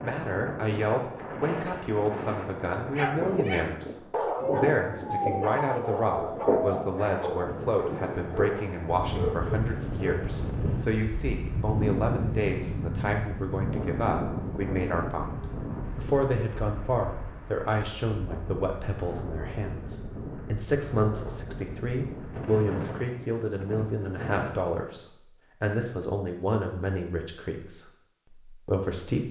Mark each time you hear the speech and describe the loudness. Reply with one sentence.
The speech can be heard from 0.0 to 29.2 s, at a steady volume.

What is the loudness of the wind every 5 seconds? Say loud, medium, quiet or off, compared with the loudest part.
loud, loud, loud, medium, medium, off.